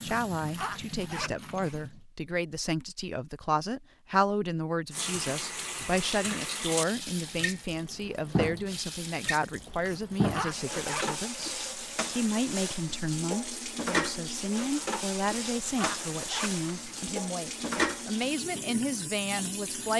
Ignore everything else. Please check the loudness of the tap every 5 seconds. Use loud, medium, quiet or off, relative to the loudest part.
medium, loud, loud, loud.